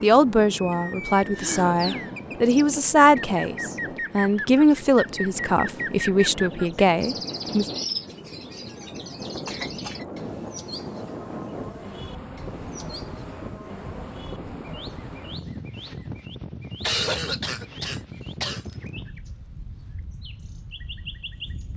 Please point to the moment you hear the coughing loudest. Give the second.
17 s.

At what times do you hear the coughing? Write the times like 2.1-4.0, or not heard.
1.4-2.1, 9.4-10.1, 16.8-18.6.